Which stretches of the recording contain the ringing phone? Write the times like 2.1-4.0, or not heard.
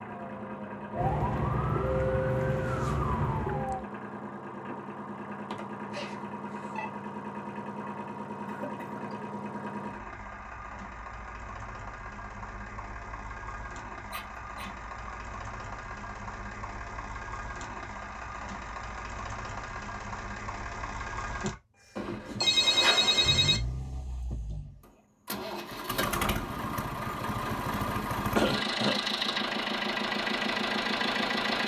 5.5-6.9, 14.1-15.1, 21.9-23.6.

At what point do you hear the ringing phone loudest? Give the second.
23 s.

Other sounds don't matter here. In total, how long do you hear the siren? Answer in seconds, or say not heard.
4 s.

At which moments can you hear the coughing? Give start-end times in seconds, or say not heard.
8.4-9.1, 28.4-29.0.